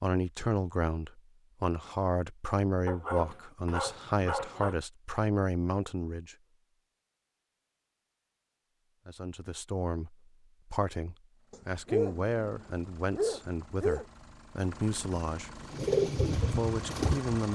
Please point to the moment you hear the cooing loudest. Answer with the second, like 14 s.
16 s.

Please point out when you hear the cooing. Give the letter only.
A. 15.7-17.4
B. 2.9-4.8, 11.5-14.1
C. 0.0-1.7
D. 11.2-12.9
A.